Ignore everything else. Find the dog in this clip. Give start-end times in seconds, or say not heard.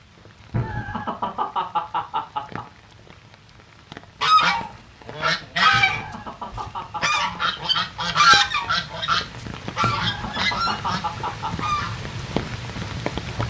not heard.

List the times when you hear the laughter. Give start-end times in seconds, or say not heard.
0.5-2.6, 5.7-7.4, 9.8-11.7.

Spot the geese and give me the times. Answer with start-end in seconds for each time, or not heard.
4.2-11.9.